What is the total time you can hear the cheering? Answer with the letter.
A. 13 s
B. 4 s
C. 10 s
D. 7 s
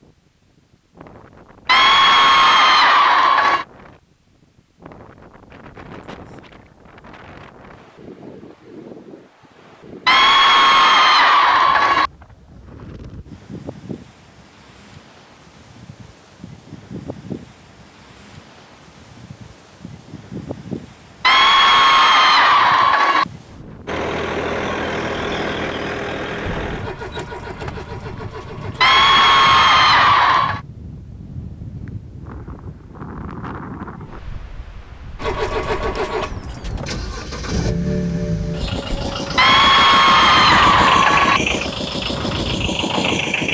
C.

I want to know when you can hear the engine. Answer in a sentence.
The engine can be heard from 23.9 to 29.6 s and from 35.1 to 43.4 s.